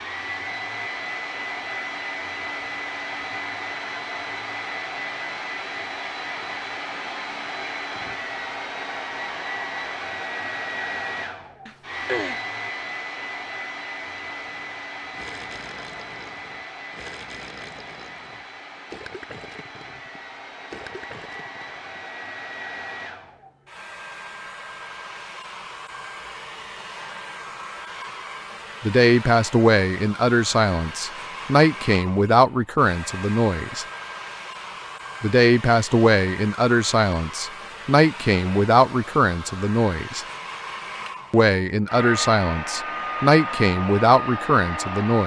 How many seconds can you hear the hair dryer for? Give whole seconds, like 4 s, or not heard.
45 s.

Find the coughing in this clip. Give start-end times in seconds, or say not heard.
11.7-12.4.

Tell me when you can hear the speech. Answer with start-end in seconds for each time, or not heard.
28.8-33.9, 35.2-40.2, 41.3-45.2.